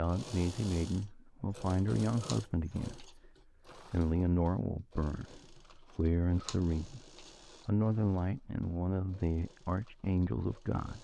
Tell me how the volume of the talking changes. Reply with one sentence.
The loudness of the talking stays about the same.